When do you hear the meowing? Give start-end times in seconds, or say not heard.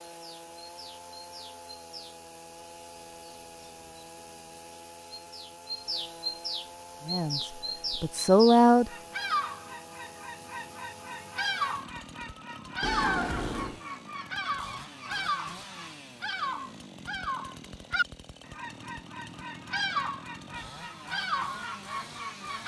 12.8-13.8.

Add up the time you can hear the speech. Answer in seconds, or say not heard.
2 s.